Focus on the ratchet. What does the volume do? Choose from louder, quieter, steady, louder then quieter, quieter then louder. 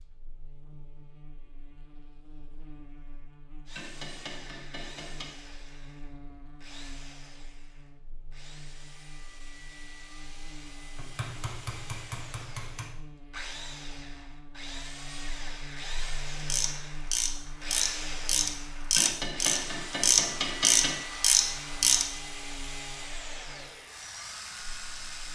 louder.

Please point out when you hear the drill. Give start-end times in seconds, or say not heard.
3.6-25.2.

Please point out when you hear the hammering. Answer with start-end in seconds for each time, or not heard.
3.8-5.3, 10.9-12.9, 18.9-20.9.